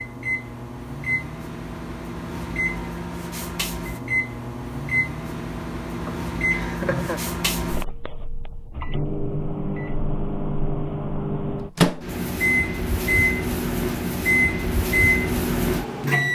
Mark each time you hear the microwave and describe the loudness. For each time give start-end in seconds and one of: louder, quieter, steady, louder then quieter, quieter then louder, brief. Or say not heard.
0.0-16.3 louder.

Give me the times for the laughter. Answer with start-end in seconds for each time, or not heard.
6.0-7.2.